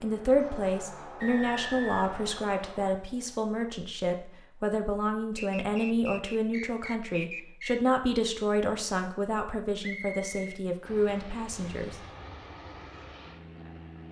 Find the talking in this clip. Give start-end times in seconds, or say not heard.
0.0-11.9.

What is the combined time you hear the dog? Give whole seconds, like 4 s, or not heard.
not heard.